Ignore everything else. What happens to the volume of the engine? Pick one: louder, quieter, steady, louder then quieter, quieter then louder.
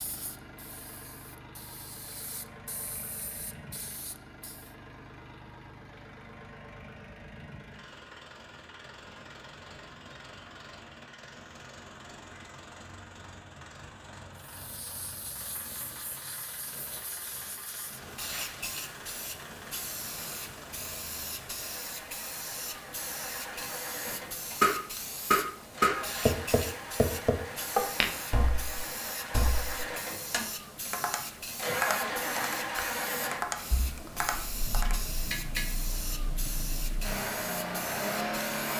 louder.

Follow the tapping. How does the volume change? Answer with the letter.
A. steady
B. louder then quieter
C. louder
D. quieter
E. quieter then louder
D.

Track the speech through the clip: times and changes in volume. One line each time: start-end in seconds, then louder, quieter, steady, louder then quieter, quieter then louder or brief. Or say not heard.
not heard.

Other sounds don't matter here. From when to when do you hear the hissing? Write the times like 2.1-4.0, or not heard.
0.0-4.8, 14.4-38.7.